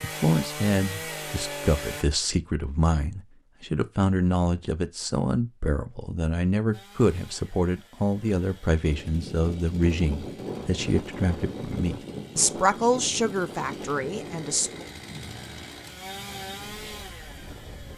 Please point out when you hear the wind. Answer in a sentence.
The wind can be heard from 8.8 to 17.9 s.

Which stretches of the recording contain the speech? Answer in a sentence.
You can hear the speech from 0.0 to 14.8 s.